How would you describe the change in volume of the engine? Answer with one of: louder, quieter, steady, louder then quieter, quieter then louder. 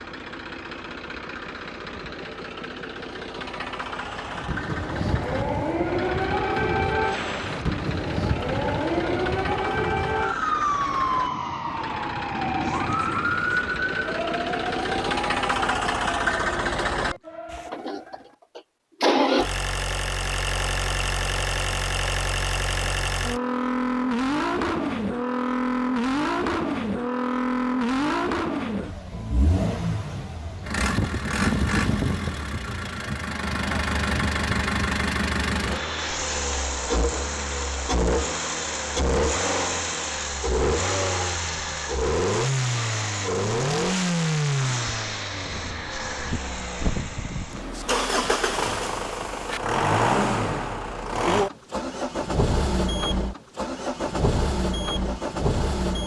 louder.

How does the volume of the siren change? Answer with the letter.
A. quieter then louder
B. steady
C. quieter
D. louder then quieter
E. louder
C.